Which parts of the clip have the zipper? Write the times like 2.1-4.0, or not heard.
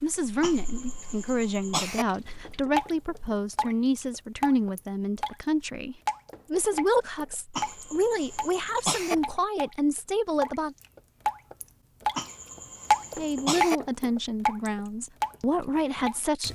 not heard.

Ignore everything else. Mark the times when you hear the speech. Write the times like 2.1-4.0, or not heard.
0.0-10.8, 13.2-16.5.